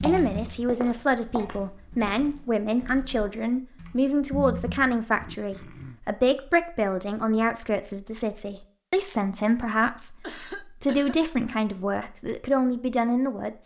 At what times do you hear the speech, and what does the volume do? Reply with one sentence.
The speech can be heard from 0.0 to 13.6 s, at a steady volume.